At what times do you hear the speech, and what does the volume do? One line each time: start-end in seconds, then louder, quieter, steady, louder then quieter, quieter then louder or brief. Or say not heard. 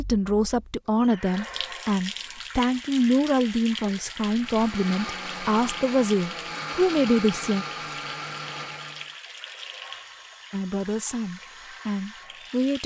0.0-7.7 steady
10.5-12.8 brief.